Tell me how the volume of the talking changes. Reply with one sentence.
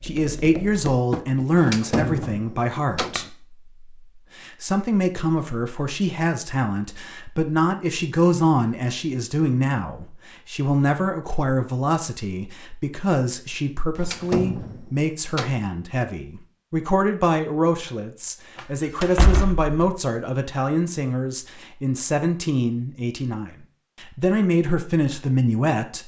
The loudness of the talking stays about the same.